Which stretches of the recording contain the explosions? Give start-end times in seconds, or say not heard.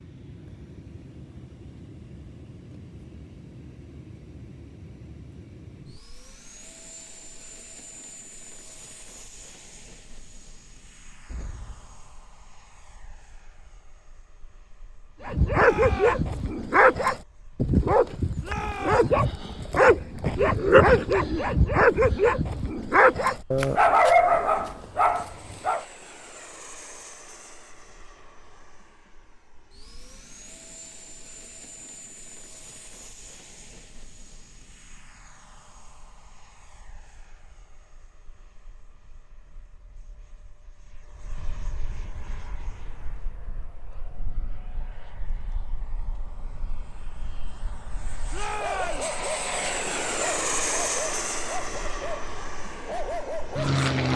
11.2-12.2.